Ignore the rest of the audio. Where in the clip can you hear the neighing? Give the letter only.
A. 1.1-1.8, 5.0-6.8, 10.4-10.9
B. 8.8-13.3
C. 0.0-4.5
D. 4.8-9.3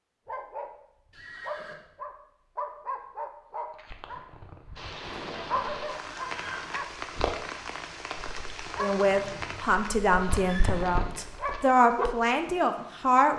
A.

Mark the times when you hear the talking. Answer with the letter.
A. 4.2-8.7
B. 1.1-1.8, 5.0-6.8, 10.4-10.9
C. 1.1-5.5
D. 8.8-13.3
D.